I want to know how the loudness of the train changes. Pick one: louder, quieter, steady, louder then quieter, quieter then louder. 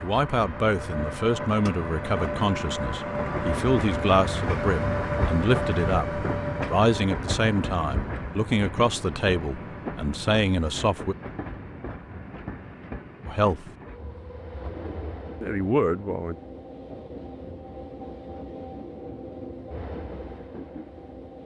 quieter.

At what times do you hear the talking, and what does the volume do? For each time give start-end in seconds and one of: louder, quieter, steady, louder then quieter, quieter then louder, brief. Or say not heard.
0.0-11.2 steady
13.2-13.7 brief
15.4-16.4 brief.